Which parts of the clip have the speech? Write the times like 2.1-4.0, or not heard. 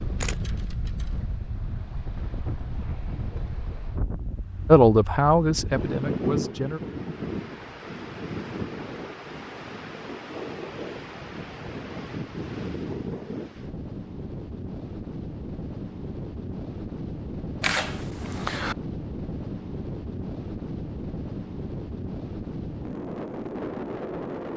4.7-6.8.